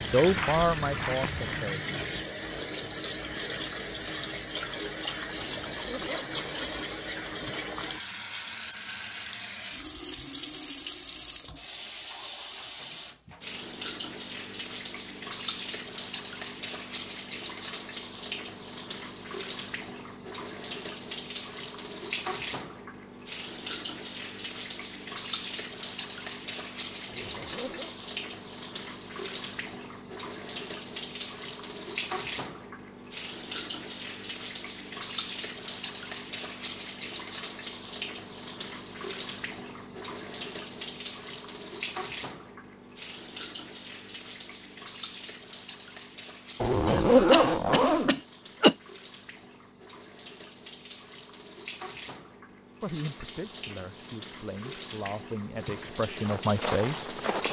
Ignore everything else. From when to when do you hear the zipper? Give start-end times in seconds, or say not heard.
5.5-6.8, 27.1-27.9, 46.6-48.1.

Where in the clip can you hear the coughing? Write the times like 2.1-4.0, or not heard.
46.9-48.8.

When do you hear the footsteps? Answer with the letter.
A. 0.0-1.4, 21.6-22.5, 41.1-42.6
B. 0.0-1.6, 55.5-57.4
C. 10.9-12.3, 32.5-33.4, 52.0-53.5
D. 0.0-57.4
B.